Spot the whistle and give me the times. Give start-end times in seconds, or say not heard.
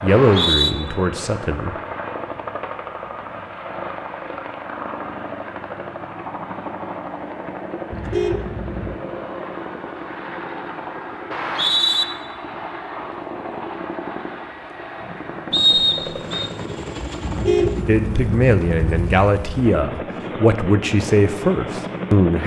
0.1-0.8, 11.3-12.1, 15.5-16.5.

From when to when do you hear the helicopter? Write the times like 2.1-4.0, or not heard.
0.0-22.4.